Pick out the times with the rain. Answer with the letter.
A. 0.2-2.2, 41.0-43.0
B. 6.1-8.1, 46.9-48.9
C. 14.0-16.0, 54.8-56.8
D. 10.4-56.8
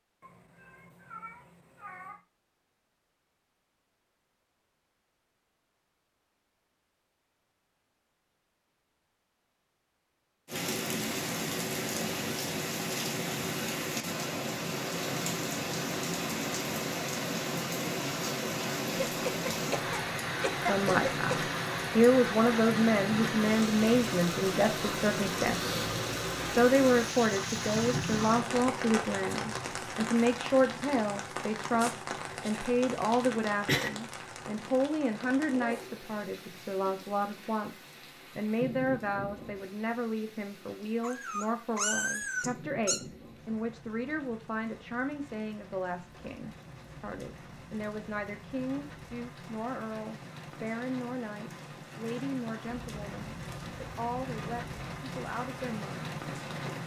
D.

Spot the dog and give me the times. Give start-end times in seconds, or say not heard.
not heard.